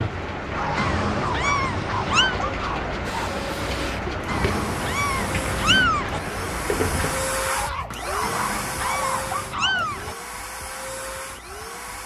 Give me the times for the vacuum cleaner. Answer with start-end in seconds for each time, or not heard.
3.0-12.0.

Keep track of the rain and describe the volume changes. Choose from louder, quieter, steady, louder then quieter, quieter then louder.
steady.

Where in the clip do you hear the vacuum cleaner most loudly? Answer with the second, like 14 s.
7 s.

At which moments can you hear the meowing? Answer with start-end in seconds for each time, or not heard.
0.8-2.4, 4.2-6.2, 8.2-10.2.